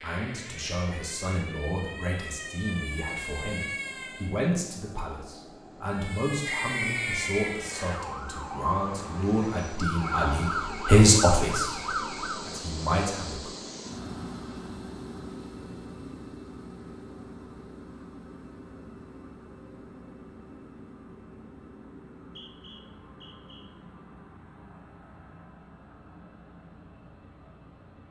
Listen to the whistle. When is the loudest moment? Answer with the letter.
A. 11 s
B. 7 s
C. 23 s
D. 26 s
B.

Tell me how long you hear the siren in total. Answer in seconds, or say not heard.
11 s.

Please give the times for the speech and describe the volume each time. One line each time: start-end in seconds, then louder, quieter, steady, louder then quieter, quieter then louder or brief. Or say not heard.
0.0-13.5 louder.